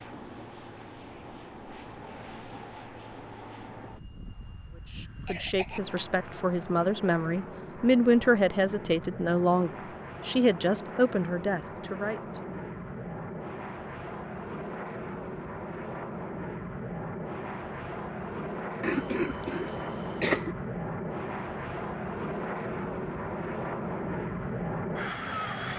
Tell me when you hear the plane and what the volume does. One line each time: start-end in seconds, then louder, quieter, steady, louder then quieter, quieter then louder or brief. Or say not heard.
0.0-25.7 louder.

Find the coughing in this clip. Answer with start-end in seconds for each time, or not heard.
5.2-6.0, 18.8-20.6.